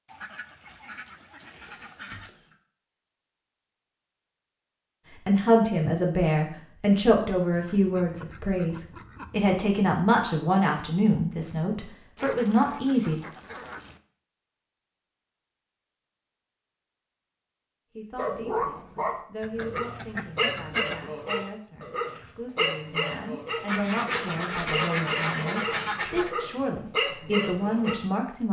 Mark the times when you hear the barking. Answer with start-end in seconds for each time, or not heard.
18.1-27.9.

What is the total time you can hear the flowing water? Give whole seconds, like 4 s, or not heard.
not heard.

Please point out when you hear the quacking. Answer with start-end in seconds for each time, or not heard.
0.1-2.4, 7.5-9.7, 12.2-14.0, 19.4-21.1, 23.6-26.4.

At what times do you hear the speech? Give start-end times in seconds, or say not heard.
5.2-13.2, 17.9-28.4.